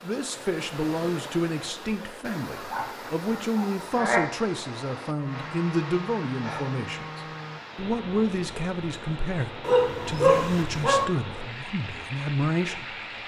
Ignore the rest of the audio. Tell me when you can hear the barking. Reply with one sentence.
The barking can be heard from 2.7 to 4.2 s and from 9.6 to 11.1 s.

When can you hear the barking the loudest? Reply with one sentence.
The loudest moment of the barking is at 10 seconds.